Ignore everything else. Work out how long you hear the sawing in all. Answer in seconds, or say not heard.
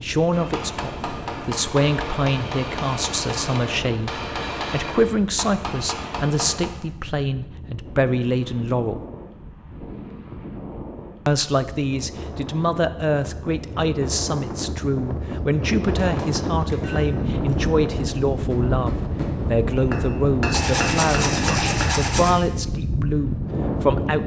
2 s.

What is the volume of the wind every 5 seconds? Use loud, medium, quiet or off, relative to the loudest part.
quiet, quiet, medium, loud, loud.